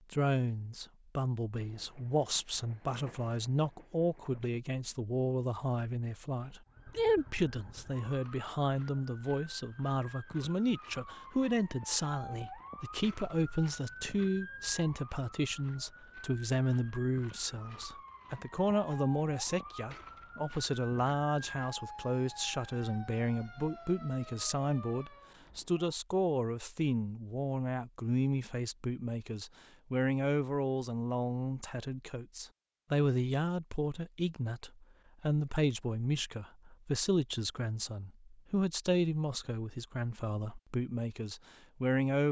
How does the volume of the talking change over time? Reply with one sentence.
The loudness of the talking stays about the same.